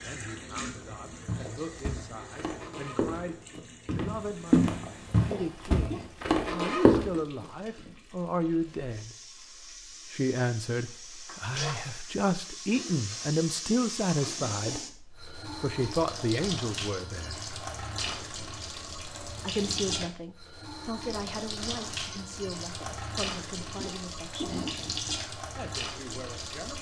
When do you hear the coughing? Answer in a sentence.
The coughing can be heard from 5.0 to 6.1 s, from 13.4 to 14.9 s and from 23.6 to 24.8 s.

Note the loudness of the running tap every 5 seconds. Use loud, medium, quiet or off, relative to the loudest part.
medium, quiet, loud, loud, loud, loud.